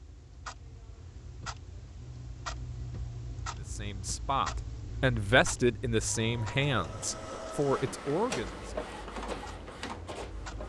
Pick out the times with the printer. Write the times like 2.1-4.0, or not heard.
6.0-10.6.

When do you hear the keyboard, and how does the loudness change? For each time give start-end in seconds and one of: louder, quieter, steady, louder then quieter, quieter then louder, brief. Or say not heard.
not heard.